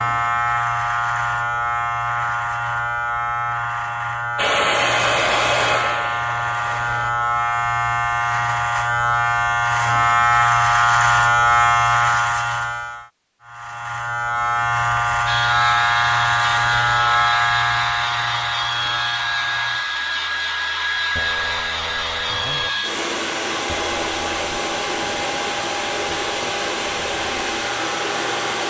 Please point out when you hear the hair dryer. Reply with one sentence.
The hair dryer can be heard from 4.3 to 7.2 s and from 15.2 to 28.6 s.